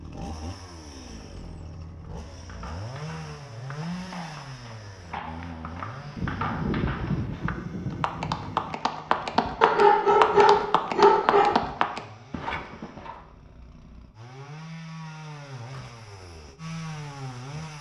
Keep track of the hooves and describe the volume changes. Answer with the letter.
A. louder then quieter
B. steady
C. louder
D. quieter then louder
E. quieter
C.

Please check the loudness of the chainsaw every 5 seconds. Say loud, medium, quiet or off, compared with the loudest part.
loud, medium, medium, loud.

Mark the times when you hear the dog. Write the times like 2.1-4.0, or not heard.
9.6-11.6.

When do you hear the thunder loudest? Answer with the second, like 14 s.
7 s.